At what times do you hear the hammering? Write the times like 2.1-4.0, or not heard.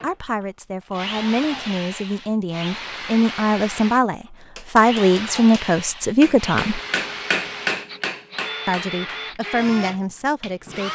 4.5-9.1.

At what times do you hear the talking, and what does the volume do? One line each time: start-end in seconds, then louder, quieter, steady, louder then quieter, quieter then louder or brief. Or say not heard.
0.0-6.8 louder
8.7-10.9 brief.